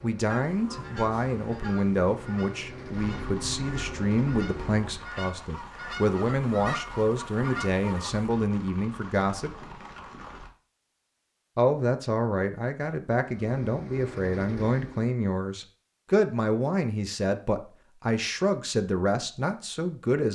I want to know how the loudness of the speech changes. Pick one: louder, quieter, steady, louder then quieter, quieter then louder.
steady.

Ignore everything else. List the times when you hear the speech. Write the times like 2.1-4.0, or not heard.
0.0-9.6, 11.6-20.3.